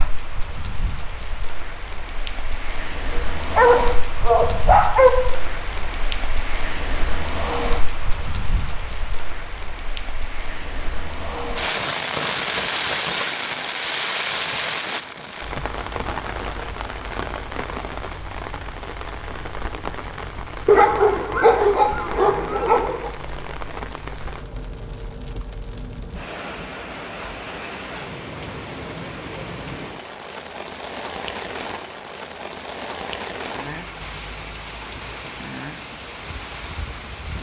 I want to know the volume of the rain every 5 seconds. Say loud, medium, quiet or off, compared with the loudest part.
medium, medium, loud, medium, medium, medium, medium, medium.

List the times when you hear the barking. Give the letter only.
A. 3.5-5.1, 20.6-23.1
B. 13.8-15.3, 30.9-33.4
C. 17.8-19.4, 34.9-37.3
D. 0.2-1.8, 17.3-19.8
A.